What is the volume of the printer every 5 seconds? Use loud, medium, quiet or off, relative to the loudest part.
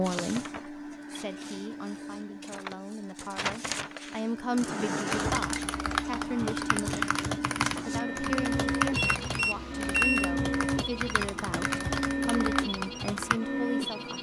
medium, loud, loud.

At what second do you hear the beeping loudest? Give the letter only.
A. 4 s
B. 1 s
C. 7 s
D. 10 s
D.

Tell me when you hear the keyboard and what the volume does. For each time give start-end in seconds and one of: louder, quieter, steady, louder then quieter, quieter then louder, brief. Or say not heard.
5.1-13.4 steady.